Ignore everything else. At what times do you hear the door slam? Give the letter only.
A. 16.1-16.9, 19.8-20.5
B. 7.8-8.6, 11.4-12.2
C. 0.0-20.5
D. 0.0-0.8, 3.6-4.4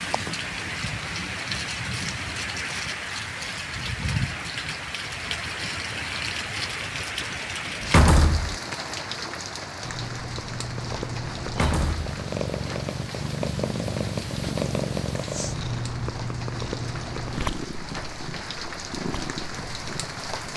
B.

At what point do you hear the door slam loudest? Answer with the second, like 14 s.
8 s.